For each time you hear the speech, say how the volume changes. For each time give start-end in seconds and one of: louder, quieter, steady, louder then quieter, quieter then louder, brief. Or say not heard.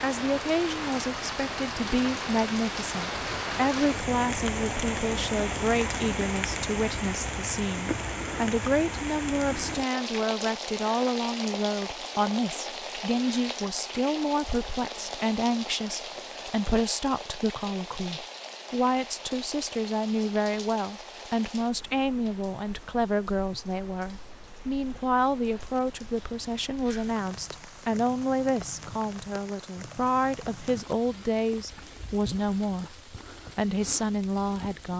0.0-34.9 steady.